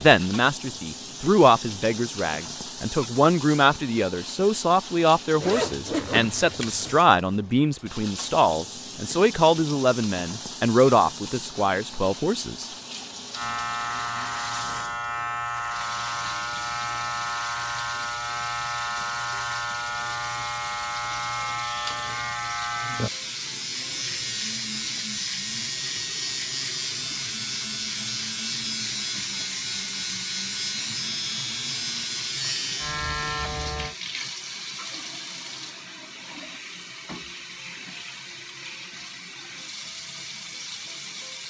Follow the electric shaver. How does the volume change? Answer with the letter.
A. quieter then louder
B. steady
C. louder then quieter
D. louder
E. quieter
B.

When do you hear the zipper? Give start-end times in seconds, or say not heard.
5.4-7.0.